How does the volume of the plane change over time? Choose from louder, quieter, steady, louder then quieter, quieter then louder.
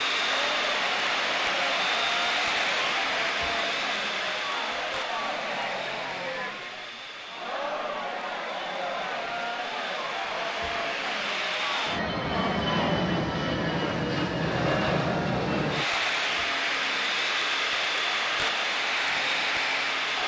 quieter then louder.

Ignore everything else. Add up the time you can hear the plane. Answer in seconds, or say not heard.
20 s.